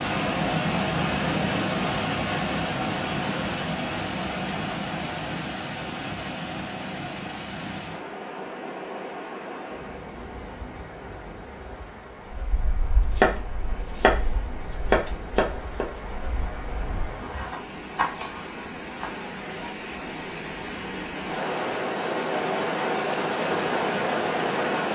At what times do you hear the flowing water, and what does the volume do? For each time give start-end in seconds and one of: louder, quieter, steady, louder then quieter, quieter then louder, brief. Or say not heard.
0.0-24.8 quieter then louder.